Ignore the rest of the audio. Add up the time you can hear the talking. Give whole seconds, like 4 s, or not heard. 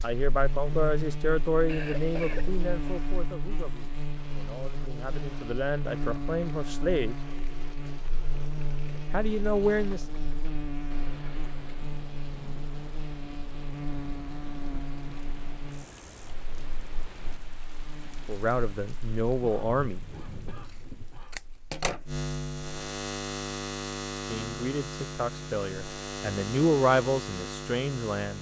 14 s.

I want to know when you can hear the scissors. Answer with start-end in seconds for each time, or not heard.
20.6-22.1.